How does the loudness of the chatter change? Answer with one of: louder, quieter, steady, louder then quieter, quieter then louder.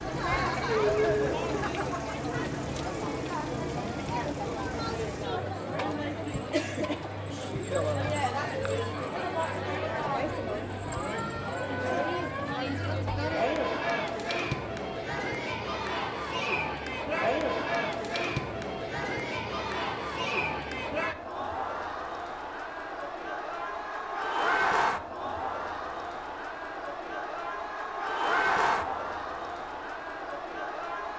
steady.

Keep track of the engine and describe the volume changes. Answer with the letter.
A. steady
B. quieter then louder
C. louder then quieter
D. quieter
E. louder
A.